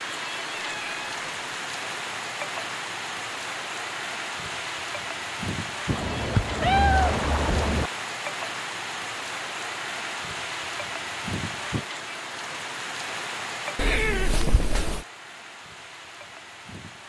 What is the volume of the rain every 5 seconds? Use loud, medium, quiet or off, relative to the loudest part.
loud, loud, loud, medium.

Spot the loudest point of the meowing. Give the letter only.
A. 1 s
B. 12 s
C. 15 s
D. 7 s
D.